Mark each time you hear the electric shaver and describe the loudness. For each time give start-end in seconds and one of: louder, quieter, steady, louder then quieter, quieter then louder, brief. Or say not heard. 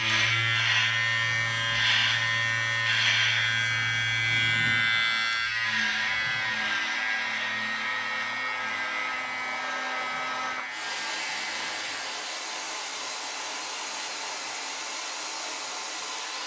0.0-12.2 quieter.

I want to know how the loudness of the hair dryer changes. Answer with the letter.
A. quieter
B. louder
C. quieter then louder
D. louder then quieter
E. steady
B.